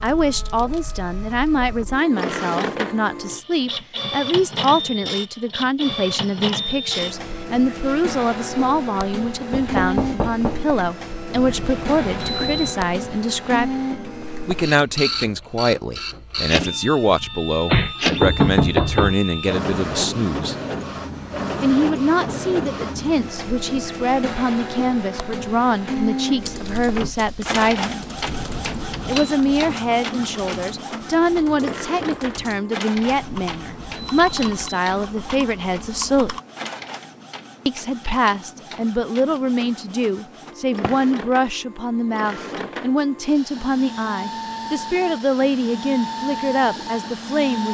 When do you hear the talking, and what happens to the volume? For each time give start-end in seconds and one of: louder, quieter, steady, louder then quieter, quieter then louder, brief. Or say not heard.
0.0-13.8 steady
14.4-20.6 steady
21.6-28.1 steady
29.1-36.3 steady
37.6-47.6 steady.